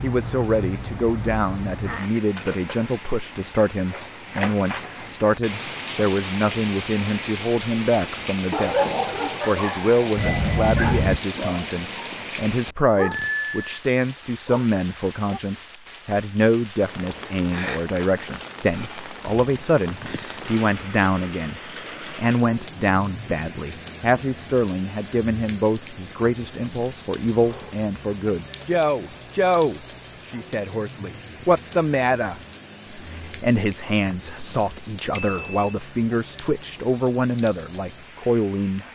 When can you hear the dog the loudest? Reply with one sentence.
The volume of the dog peaks at 9 seconds.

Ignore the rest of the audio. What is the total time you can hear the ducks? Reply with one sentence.
The ducks can't be heard in this clip.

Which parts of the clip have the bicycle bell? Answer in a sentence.
The bicycle bell can be heard from 10.2 to 11.2 s, from 13.0 to 13.8 s and from 35.1 to 35.8 s.